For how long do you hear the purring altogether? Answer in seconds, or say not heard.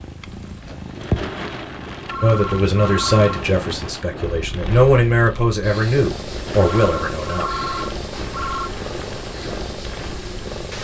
11 s.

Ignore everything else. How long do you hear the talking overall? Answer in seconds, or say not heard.
5 s.